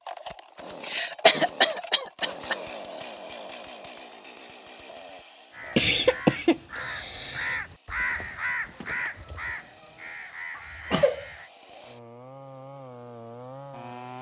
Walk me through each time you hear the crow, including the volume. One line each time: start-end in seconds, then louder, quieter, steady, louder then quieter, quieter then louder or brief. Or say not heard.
5.5-11.5 louder then quieter.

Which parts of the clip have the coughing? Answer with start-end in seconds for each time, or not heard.
0.8-2.6, 5.8-7.5, 10.6-11.3.